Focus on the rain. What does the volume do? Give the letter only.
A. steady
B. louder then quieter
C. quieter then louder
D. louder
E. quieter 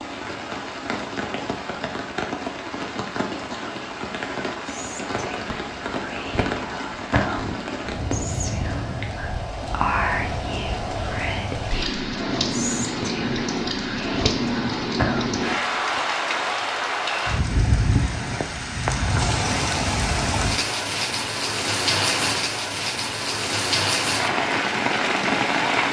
D.